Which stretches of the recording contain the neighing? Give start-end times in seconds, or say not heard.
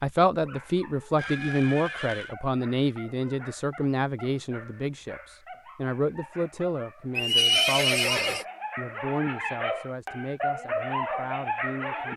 1.1-2.4, 7.2-8.4.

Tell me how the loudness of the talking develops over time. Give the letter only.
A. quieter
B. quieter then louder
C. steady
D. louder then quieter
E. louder
A.